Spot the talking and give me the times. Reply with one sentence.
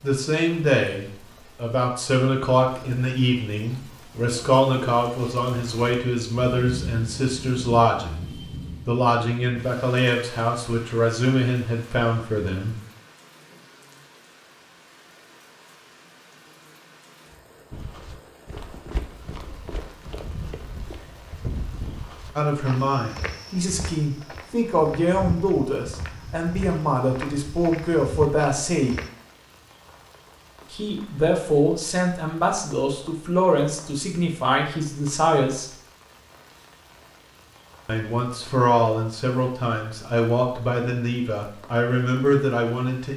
The talking can be heard from 0.0 to 12.8 s, from 22.4 to 28.9 s, from 30.7 to 35.7 s and from 37.9 to 43.1 s.